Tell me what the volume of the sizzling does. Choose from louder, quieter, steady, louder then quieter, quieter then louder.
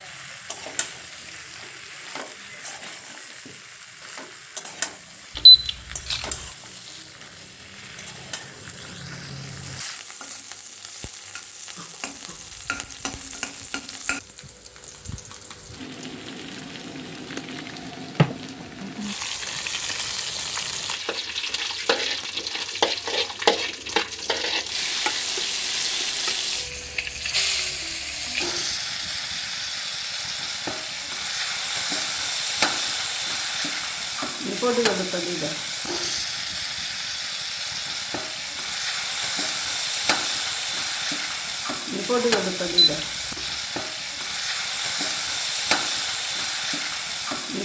louder.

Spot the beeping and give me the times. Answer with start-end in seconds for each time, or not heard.
5.3-6.2, 42.8-43.5.